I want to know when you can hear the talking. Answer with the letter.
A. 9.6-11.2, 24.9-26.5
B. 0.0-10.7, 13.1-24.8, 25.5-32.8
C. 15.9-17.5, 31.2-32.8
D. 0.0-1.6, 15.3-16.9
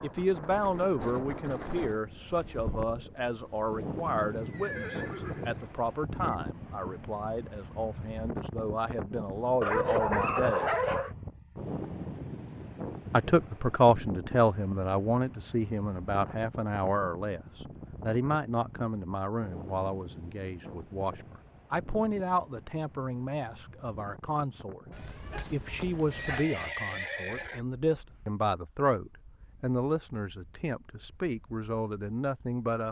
B.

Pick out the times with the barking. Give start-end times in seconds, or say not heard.
9.6-11.2, 24.9-26.5.